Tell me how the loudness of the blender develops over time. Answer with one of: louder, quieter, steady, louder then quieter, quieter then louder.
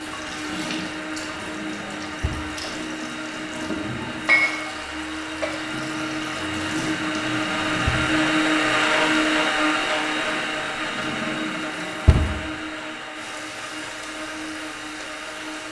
louder then quieter.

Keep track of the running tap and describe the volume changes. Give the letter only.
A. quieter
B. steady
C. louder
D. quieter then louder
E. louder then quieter
E.